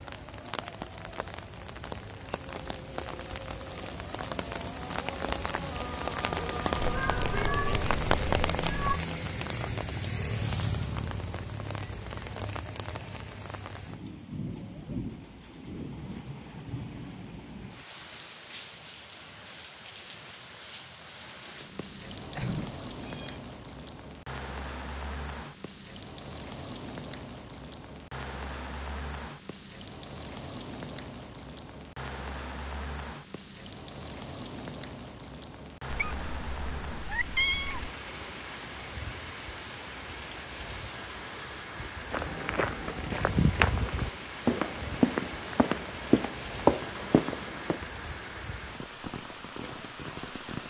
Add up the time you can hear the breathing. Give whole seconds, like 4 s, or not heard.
not heard.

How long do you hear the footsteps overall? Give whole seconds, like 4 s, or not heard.
6 s.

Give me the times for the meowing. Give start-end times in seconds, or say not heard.
6.8-9.0, 22.4-23.4, 35.9-37.9.